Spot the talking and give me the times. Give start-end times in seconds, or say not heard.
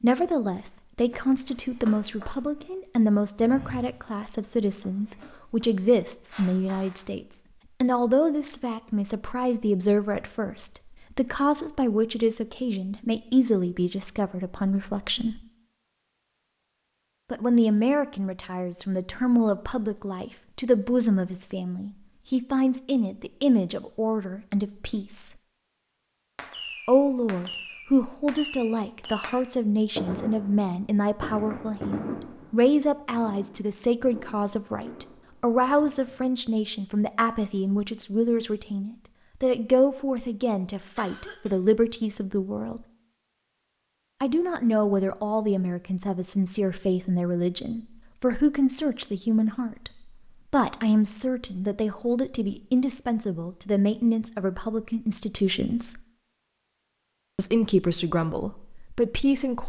0.0-15.4, 17.3-25.3, 26.9-42.8, 44.2-49.9, 50.5-56.0, 57.4-59.6.